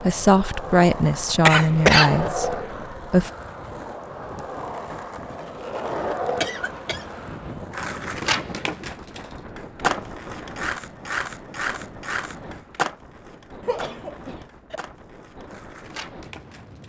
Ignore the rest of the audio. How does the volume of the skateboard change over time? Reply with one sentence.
The volume of the skateboard goes down.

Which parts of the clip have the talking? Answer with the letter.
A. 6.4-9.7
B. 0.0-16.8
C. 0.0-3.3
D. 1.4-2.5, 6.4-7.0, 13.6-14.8
C.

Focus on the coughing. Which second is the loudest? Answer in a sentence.
The loudest moment of the coughing is at 2 seconds.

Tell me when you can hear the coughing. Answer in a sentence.
You can hear the coughing from 1.4 to 2.5 s, from 6.4 to 7.0 s and from 13.6 to 14.8 s.